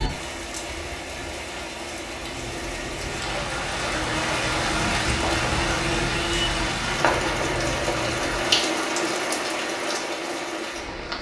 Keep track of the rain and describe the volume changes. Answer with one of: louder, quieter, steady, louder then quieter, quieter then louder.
louder.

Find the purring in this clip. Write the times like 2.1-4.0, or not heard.
2.1-8.7.